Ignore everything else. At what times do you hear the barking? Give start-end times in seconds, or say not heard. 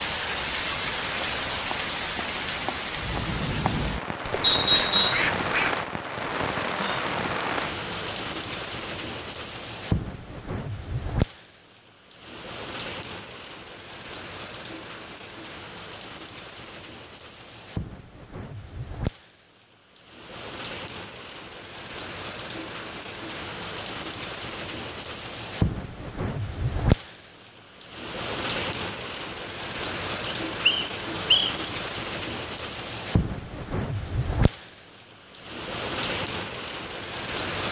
not heard.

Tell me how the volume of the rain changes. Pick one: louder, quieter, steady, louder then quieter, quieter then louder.
quieter then louder.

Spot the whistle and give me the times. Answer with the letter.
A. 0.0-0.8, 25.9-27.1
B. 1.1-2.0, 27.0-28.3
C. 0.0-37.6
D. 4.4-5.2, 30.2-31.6
D.